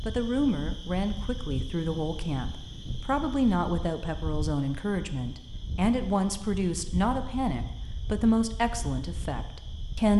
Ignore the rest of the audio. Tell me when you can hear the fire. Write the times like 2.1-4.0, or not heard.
not heard.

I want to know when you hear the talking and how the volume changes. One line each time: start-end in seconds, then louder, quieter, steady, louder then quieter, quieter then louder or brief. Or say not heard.
0.1-10.1 steady.